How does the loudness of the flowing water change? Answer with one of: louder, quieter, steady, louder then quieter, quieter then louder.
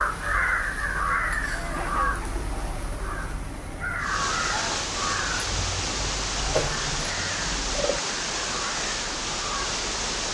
steady.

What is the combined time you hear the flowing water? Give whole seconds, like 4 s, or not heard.
6 s.